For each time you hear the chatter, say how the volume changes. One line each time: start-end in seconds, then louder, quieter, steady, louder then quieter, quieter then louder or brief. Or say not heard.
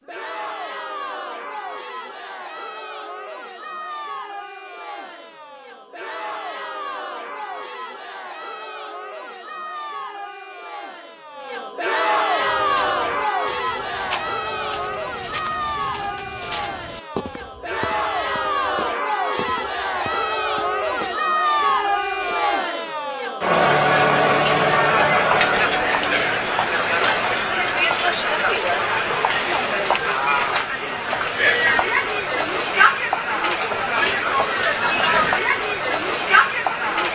0.0-37.1 louder.